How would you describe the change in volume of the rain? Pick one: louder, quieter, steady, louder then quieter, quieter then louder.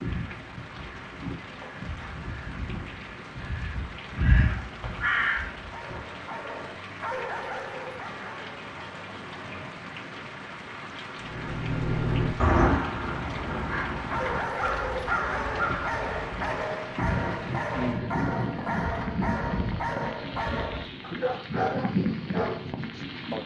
louder.